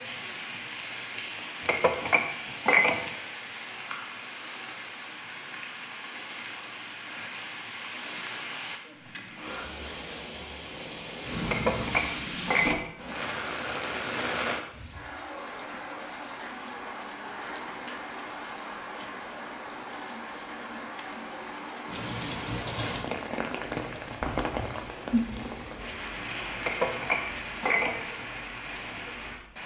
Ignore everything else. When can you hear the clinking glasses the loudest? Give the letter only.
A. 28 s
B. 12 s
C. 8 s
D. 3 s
D.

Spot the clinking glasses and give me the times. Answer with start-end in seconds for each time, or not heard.
1.6-3.1, 11.4-12.9, 26.6-28.1.